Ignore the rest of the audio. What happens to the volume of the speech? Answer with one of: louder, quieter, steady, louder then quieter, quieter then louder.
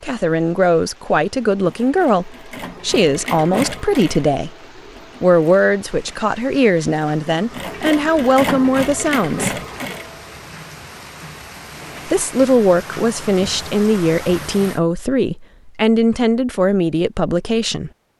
steady.